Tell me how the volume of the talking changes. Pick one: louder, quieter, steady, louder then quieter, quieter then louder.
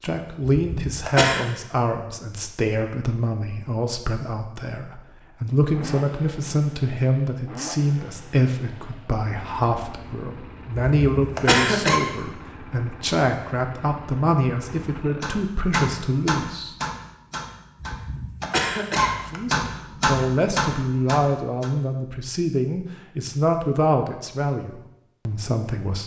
steady.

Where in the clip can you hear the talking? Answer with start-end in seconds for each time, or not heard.
0.0-16.8, 19.3-26.0.